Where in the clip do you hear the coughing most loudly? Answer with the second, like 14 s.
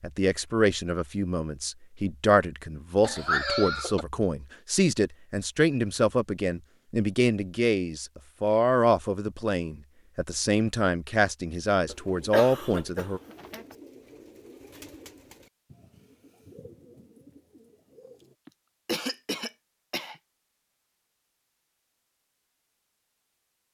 3 s.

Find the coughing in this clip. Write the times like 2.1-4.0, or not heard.
3.0-4.0, 11.8-13.8, 18.4-20.1.